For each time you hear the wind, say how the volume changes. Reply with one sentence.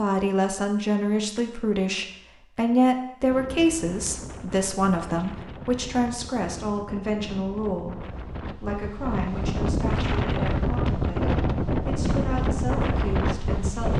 The wind can be heard from 3.3 to 13.9 s, getting louder.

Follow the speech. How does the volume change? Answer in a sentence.
The volume of the speech goes down.